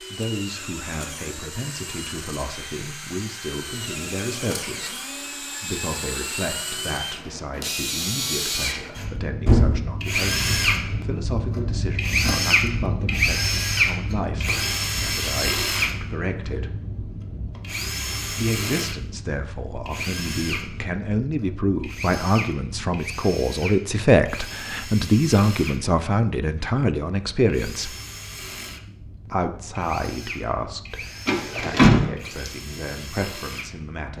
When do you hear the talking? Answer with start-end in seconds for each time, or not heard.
0.1-16.8, 18.3-27.9, 29.3-34.1.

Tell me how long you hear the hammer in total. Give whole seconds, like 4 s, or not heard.
not heard.